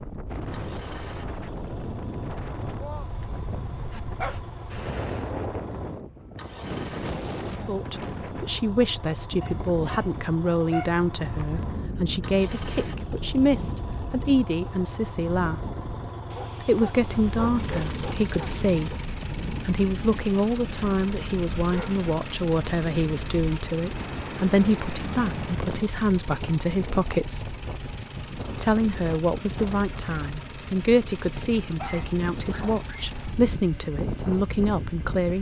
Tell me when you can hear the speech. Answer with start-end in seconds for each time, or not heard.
7.7-15.6, 16.6-27.6, 28.6-35.3.